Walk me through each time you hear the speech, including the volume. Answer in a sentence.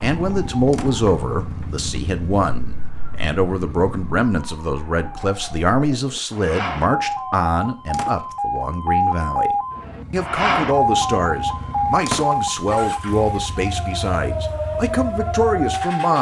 The speech can be heard from 0.0 to 16.1 s, at a steady volume.